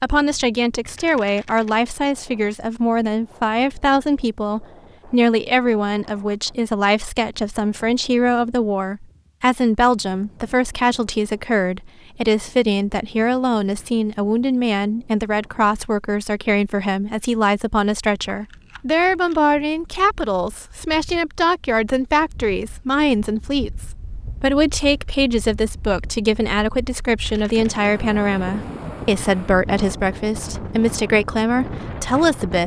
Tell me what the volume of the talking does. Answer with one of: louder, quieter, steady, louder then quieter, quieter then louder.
steady.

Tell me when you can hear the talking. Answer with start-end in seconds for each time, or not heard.
0.0-32.6.